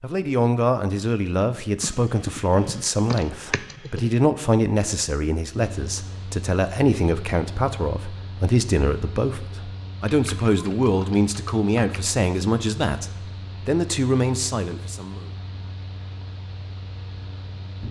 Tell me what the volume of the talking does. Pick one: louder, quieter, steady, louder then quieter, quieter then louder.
steady.